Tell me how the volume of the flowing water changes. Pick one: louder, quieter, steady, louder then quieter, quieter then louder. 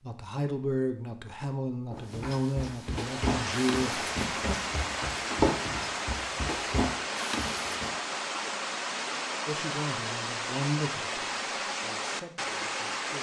steady.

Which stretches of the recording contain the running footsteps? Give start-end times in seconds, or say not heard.
1.9-7.9.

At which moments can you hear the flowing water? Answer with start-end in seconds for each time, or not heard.
2.8-13.1.